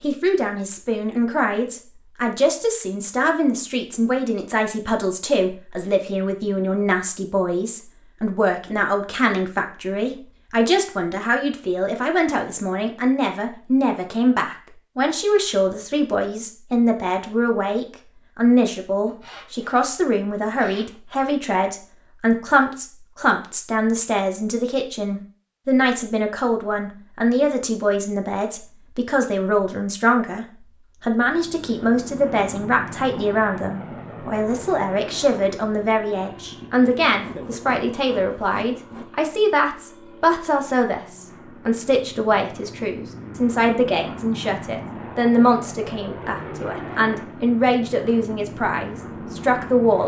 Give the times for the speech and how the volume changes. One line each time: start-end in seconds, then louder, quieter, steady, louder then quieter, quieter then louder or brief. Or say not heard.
0.0-50.0 steady.